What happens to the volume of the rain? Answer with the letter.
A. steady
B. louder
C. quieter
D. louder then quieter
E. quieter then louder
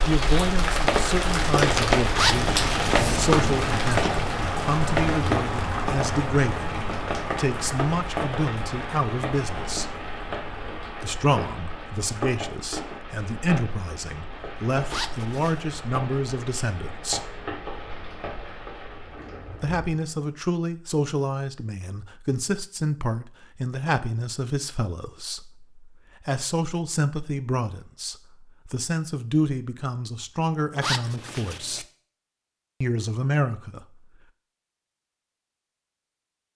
C.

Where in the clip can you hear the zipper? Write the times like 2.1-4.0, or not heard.
2.1-3.2, 14.9-15.7, 30.8-31.9.